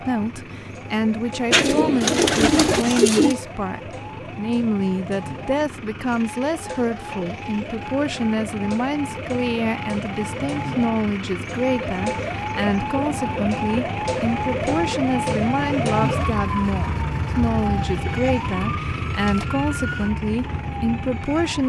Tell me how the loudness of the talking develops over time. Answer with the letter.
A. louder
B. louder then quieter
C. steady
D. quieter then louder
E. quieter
C.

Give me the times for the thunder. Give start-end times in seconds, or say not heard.
not heard.